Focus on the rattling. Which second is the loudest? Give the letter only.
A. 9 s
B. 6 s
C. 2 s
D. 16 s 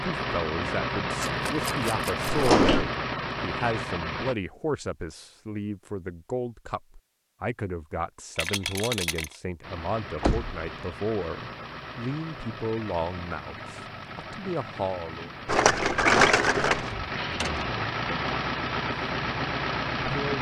D.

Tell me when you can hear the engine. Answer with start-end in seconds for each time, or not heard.
0.0-4.3, 9.6-20.3.